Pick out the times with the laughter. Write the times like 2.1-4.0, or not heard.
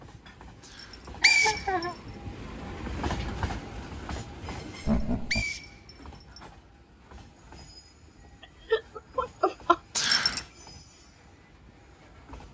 1.2-1.9, 4.8-5.5, 8.7-9.8.